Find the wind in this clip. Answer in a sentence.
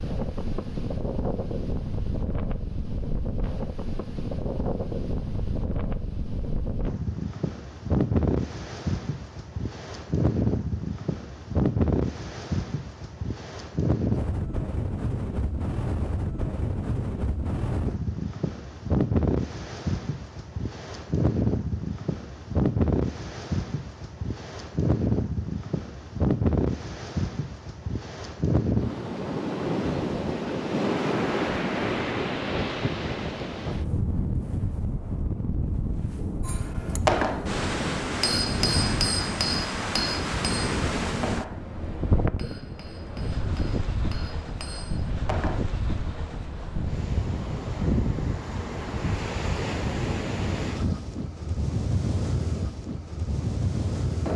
You can hear the wind from 0.0 to 54.3 s.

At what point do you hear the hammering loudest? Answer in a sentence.
The loudest moment of the hammering is at 37 seconds.